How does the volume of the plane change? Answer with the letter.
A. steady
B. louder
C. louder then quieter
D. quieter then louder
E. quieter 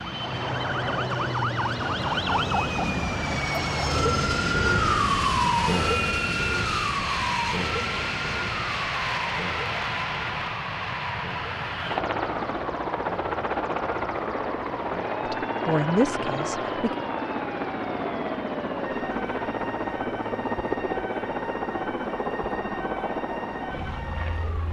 A.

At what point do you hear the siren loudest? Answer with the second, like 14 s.
5 s.